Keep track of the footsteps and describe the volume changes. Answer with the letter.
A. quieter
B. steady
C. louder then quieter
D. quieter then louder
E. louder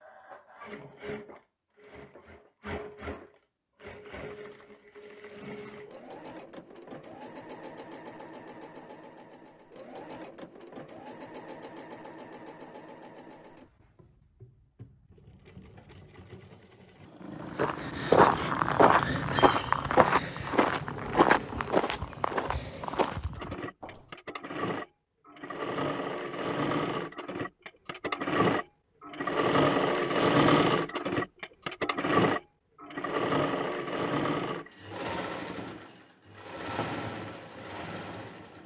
A.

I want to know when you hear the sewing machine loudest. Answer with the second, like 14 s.
30 s.